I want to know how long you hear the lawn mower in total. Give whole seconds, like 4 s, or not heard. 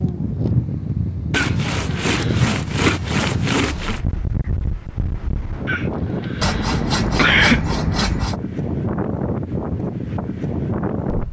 not heard.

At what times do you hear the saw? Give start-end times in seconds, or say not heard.
1.3-4.0, 6.4-8.3.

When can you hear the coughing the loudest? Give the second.
7 s.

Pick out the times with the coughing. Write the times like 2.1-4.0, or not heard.
1.3-3.0, 5.7-7.7.